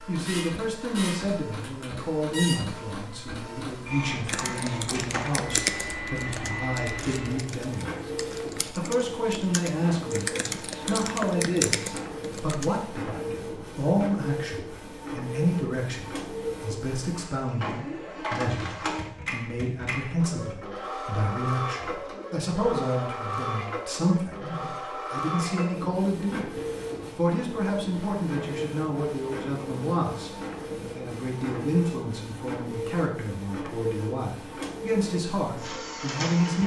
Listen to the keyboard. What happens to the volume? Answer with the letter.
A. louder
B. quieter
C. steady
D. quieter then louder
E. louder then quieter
D.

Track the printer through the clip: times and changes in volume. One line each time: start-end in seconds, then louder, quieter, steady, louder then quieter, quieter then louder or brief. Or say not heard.
0.0-36.6 steady.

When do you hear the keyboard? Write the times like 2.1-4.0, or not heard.
4.2-12.7.